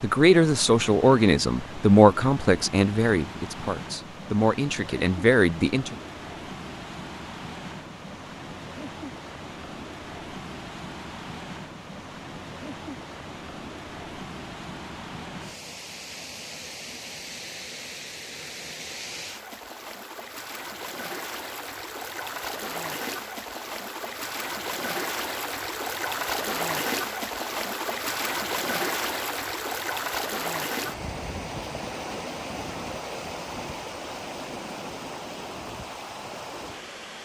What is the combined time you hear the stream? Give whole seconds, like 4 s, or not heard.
37 s.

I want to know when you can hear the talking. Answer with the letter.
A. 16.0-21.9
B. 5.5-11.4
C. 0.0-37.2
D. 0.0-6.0
D.